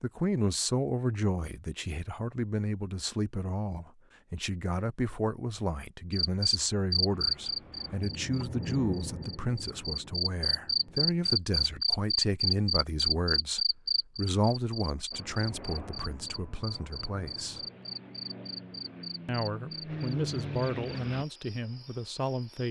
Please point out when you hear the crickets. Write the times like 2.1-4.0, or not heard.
6.1-22.6.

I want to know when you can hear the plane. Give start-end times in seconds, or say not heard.
7.1-11.4, 15.1-21.2.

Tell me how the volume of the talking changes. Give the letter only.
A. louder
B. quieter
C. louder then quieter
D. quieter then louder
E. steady
E.